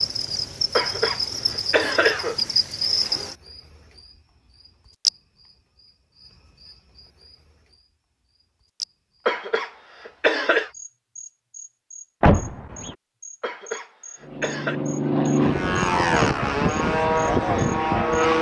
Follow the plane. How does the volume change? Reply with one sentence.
The loudness of the plane stays about the same.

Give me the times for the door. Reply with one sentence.
You can hear the door from 12.2 to 12.9 s.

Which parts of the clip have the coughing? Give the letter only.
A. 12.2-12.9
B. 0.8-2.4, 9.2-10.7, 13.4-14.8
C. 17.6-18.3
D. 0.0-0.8
B.